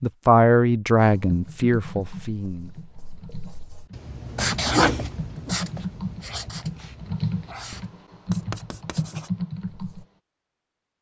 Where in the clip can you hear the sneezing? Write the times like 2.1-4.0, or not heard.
4.7-5.5.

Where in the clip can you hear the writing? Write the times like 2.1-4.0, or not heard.
1.1-10.1.